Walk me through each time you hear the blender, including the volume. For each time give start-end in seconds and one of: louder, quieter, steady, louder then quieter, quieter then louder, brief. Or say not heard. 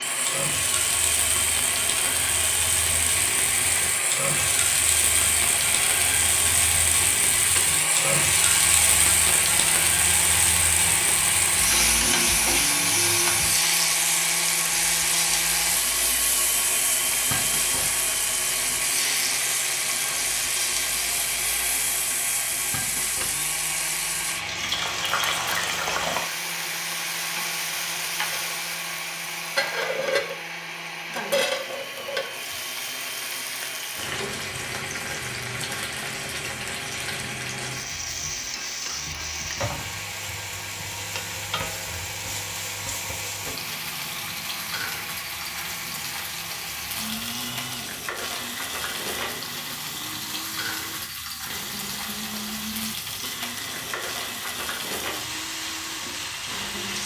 0.0-57.0 quieter.